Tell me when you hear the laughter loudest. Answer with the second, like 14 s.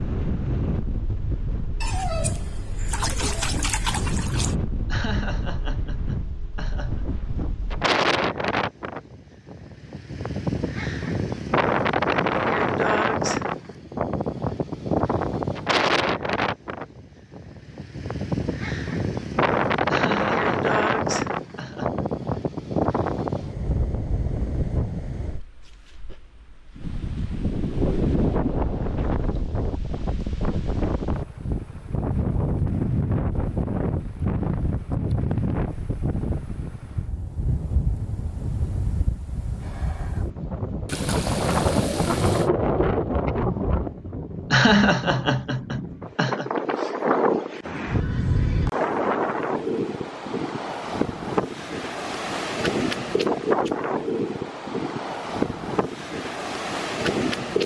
45 s.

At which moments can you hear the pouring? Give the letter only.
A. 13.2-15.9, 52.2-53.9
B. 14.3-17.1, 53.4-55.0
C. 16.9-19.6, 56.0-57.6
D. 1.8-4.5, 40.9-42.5
D.